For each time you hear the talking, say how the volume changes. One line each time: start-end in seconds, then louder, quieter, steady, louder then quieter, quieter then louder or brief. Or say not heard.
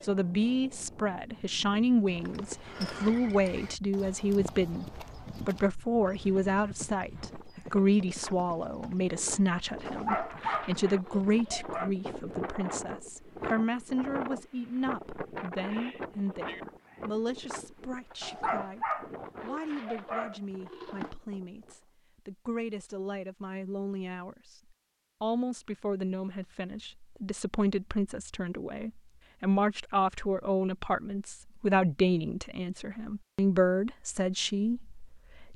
0.0-24.6 quieter
25.2-35.5 louder.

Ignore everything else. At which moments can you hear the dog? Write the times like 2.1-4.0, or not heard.
9.8-11.9, 18.2-21.1.